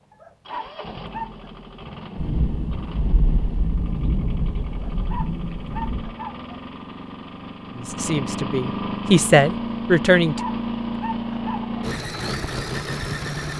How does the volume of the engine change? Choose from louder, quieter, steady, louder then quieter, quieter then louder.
louder.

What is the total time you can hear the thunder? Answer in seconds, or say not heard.
4 s.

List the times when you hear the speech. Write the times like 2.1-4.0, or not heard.
7.8-10.4.